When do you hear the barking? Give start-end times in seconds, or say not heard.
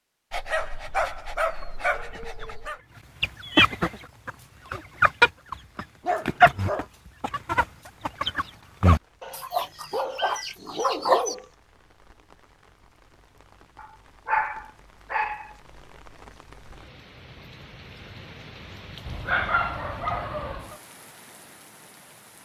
0.3-2.8, 6.0-6.8, 9.2-11.5, 13.8-15.5, 19.1-20.8.